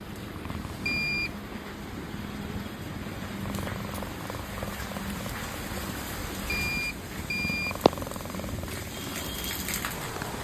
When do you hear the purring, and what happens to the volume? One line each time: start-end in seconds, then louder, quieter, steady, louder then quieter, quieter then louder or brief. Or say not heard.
0.0-10.4 steady.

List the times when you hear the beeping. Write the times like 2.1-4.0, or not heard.
0.8-1.4, 6.5-7.9.